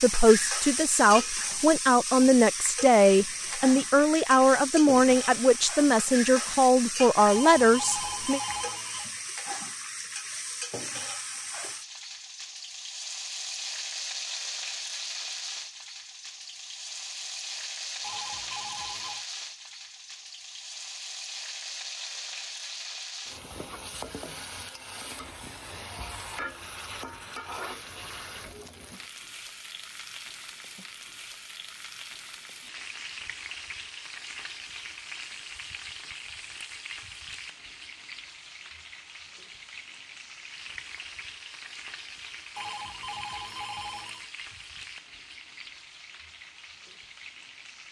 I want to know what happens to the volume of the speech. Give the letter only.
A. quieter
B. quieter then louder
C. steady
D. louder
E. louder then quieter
C.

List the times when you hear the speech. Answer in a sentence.
You can hear the speech from 0.0 to 8.4 s.